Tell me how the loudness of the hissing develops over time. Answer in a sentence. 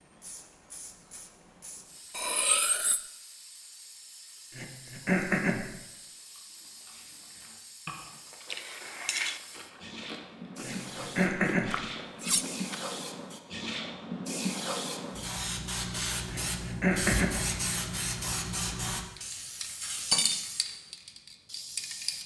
The volume of the hissing goes up.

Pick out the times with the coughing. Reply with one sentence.
You can hear the coughing from 4.5 to 5.7 s, from 10.6 to 11.8 s and from 16.3 to 17.4 s.